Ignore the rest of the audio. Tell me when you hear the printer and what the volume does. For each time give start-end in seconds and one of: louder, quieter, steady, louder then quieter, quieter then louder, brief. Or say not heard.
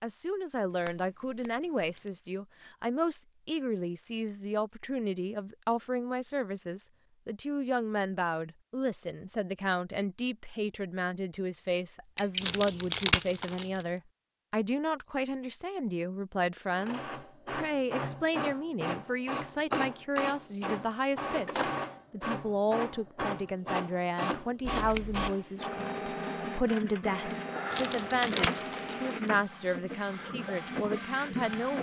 16.7-31.7 steady.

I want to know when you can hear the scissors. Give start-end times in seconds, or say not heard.
0.7-2.1, 11.8-12.4, 24.7-25.3.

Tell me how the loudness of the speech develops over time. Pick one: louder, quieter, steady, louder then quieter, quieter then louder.
steady.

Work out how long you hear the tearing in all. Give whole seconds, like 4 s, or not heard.
3 s.